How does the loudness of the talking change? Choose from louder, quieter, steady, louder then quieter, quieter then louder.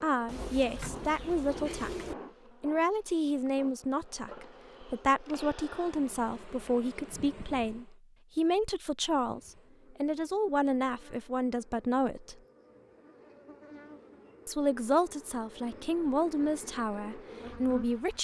steady.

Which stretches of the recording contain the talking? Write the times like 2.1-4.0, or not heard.
0.0-12.3, 14.4-18.1.